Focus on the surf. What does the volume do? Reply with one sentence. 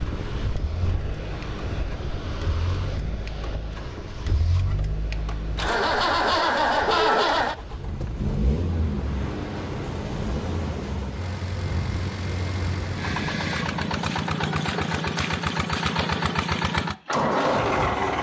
The loudness of the surf goes down, then up.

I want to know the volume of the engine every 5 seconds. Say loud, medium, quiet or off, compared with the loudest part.
quiet, loud, medium, loud.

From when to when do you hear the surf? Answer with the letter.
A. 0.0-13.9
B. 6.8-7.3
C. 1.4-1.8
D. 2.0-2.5
A.